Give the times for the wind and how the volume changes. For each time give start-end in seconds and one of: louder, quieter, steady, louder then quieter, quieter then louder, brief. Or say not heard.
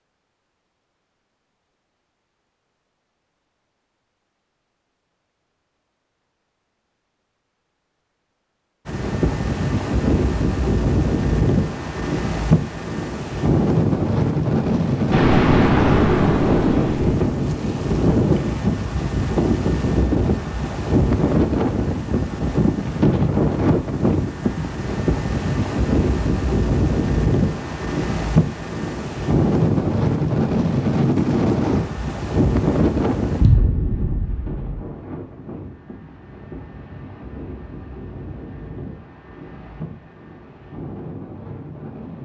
8.8-42.2 quieter.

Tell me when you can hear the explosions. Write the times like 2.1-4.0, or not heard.
15.1-17.1, 33.4-34.8.